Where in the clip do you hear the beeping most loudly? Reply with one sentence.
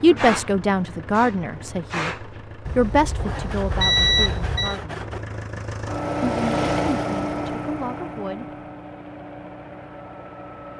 The volume of the beeping peaks at 4 seconds.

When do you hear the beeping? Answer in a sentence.
You can hear the beeping from 2.6 to 4.8 s.